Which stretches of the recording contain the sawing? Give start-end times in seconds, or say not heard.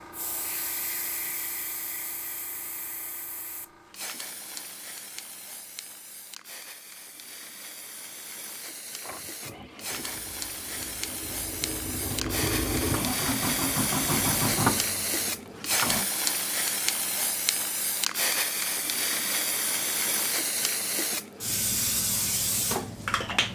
not heard.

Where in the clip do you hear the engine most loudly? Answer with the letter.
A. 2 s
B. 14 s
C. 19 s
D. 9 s
B.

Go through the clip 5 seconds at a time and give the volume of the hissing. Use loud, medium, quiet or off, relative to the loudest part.
medium, quiet, loud, loud, loud.